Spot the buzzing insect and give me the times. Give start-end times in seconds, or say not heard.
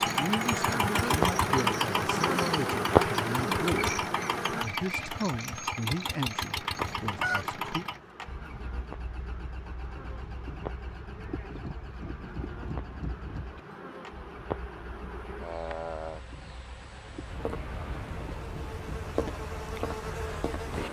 0.0-4.7, 6.5-20.8.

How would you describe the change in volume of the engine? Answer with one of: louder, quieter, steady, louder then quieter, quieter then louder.
quieter.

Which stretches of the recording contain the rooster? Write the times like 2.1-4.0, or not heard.
6.8-7.5.